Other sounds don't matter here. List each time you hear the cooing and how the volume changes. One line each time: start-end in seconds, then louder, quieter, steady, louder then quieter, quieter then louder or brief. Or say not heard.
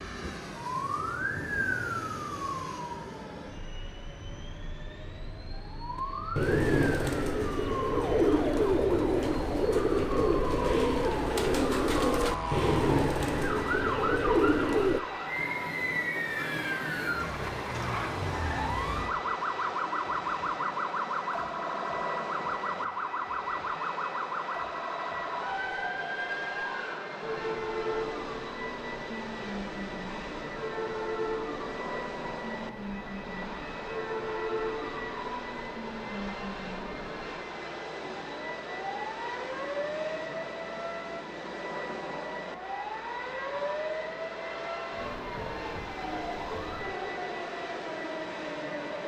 6.0-15.0 steady.